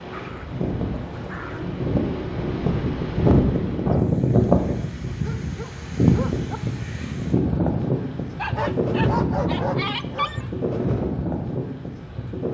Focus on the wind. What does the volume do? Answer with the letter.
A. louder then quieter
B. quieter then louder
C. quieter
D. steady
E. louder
A.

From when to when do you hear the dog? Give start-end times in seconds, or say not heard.
0.1-1.8, 5.1-6.6, 8.3-10.4.